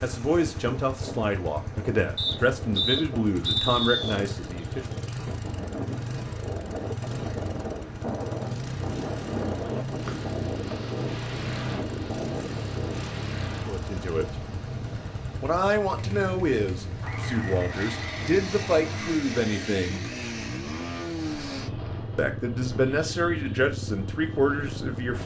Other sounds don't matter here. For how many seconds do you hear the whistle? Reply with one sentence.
The whistle can be heard for 5 seconds in total.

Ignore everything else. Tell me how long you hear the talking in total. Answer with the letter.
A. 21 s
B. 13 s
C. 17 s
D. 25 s
B.